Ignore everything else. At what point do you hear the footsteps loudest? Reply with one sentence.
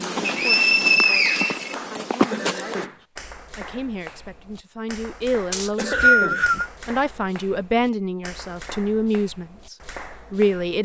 The loudest moment of the footsteps is at 2 seconds.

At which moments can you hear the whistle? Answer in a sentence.
The whistle can be heard from 0.2 to 1.8 s and from 5.5 to 6.7 s.